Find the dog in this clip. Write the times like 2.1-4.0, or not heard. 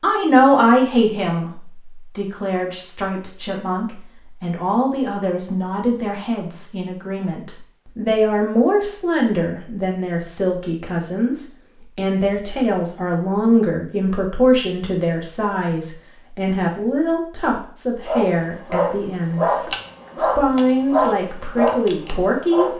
18.1-22.7.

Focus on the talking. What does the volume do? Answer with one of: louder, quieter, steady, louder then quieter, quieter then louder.
steady.